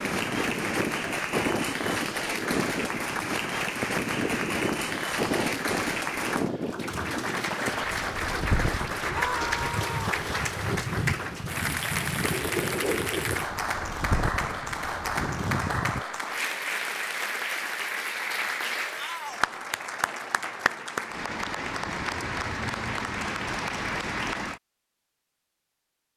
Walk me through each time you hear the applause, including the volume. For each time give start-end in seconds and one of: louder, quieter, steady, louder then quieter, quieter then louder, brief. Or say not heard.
0.0-24.6 steady.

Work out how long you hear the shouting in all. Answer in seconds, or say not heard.
2 s.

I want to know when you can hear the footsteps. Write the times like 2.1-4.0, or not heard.
not heard.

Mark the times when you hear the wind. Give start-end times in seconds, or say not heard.
0.0-16.1.